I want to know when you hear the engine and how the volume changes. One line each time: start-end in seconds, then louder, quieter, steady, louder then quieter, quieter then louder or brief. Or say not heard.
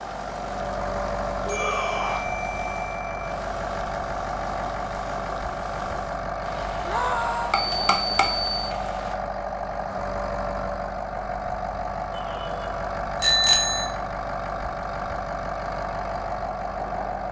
0.0-17.2 steady.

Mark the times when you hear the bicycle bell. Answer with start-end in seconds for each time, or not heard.
1.4-3.4, 7.5-8.6, 13.2-13.8.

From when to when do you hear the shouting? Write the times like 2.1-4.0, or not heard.
1.4-2.2, 6.8-7.5, 12.1-12.8.